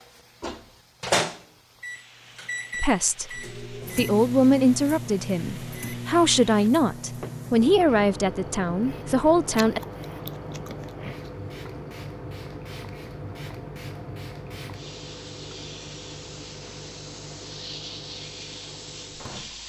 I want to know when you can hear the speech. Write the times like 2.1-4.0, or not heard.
2.8-9.8.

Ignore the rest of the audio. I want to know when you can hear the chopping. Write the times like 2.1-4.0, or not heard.
not heard.